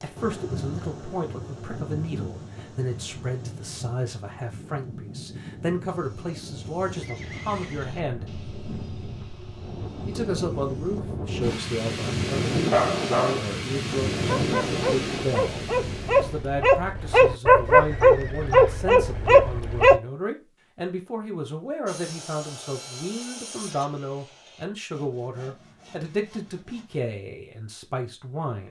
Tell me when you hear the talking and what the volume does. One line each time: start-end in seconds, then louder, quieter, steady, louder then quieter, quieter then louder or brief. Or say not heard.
0.0-8.2 steady
10.1-28.6 steady.